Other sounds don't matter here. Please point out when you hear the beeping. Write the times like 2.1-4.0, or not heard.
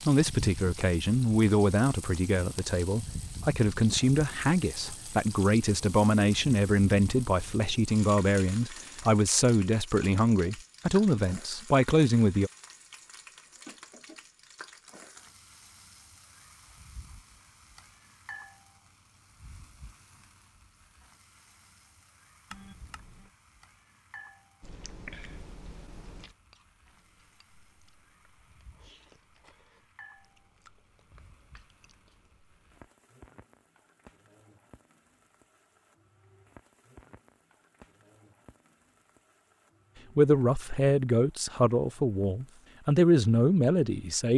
22.5-23.3.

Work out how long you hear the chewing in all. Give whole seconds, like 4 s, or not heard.
8 s.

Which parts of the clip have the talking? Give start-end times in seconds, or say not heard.
0.1-12.5, 40.1-44.3.